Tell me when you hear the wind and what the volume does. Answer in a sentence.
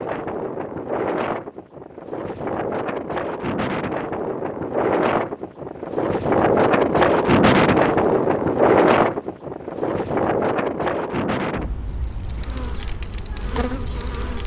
The wind can be heard from 0.0 to 14.4 s, getting louder then quieter.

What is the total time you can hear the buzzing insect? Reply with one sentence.
The buzzing insect can be heard for 2 seconds in total.